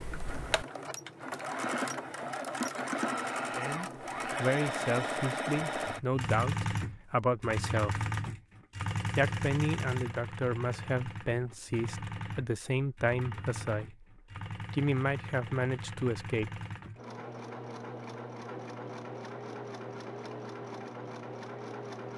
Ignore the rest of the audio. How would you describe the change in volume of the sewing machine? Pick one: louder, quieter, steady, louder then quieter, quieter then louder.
quieter.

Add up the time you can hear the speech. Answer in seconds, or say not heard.
11 s.